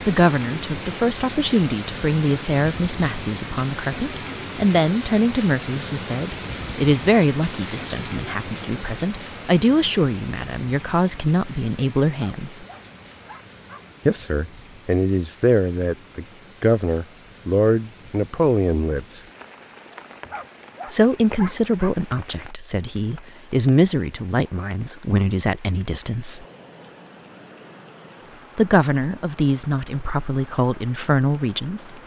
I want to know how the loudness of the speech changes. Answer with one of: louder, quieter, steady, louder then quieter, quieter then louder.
steady.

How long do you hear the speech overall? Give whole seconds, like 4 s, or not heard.
27 s.